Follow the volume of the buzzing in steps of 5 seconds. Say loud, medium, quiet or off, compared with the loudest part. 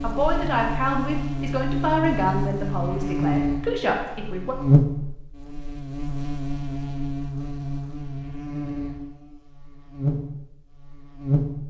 loud, medium, loud.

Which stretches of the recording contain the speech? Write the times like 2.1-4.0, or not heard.
0.0-4.5.